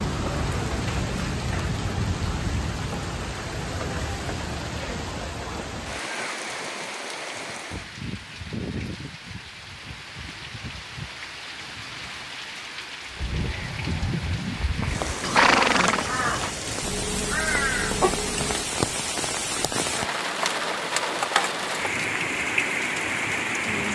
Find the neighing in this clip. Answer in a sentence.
The neighing can be heard from 15.2 to 16.5 s.